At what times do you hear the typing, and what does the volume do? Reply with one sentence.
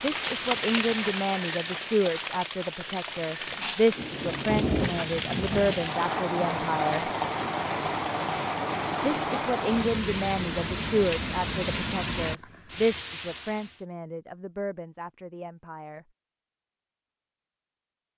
The typing can't be heard in this clip.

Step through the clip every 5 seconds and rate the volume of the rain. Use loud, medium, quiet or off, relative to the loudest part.
loud, loud, loud, off.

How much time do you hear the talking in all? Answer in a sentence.
You can hear the talking for 14 seconds altogether.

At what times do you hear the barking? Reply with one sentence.
You can't hear the barking here.